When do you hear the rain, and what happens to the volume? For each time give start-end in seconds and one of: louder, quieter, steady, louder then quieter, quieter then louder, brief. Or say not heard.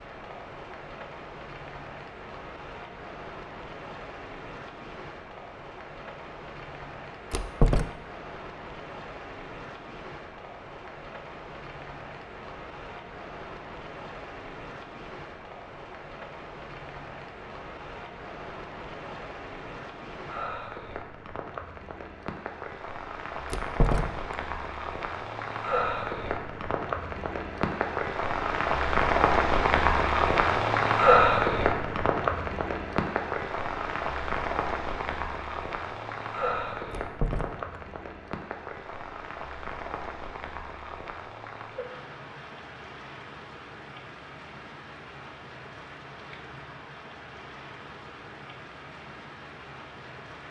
0.0-50.4 louder then quieter.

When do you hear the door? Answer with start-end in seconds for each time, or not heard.
7.3-7.9, 23.5-24.4, 36.9-37.5.